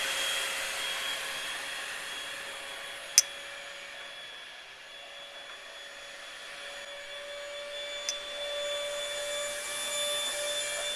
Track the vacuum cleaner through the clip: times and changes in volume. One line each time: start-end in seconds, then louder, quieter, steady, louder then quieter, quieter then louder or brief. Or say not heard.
0.0-10.9 quieter then louder.